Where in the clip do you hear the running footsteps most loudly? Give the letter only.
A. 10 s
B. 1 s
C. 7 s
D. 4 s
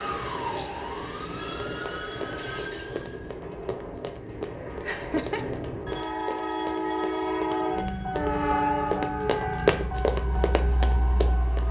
A.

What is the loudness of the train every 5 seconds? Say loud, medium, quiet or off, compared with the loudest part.
medium, loud, medium.